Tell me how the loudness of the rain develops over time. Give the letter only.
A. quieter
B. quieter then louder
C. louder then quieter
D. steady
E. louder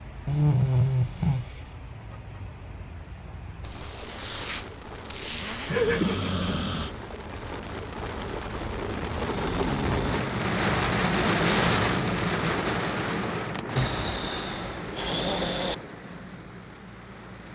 C.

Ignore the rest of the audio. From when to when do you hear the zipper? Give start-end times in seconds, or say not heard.
3.6-5.8.